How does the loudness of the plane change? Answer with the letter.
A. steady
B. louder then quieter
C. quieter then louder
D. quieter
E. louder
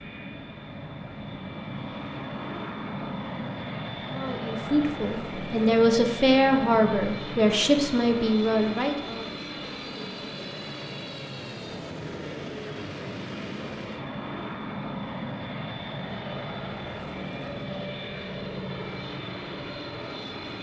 A.